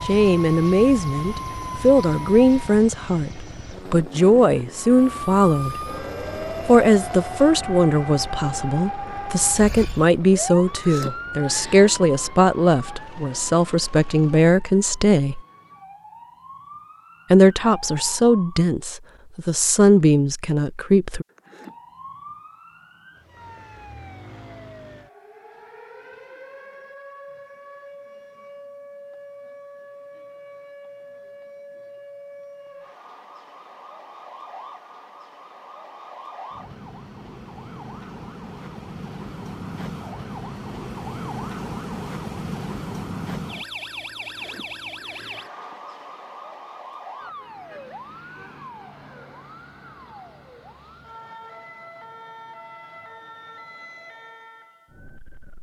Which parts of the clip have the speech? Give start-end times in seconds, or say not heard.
0.1-5.8, 6.7-15.4, 17.3-21.2.